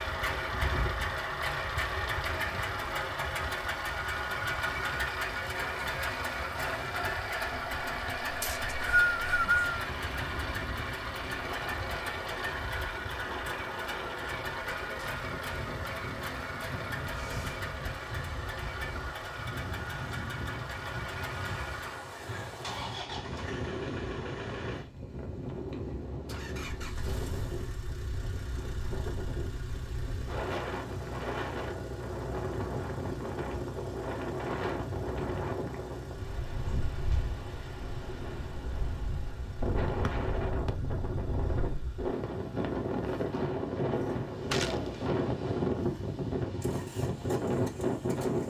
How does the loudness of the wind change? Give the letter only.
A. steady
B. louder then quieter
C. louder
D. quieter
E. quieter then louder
C.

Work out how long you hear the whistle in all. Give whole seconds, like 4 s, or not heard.
2 s.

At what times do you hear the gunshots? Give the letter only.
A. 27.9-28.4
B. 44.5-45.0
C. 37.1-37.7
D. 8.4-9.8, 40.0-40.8
B.